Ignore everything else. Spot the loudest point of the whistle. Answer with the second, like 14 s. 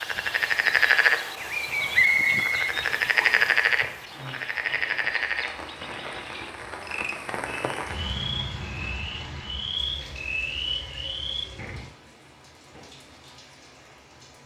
2 s.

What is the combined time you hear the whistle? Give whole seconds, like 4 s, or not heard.
2 s.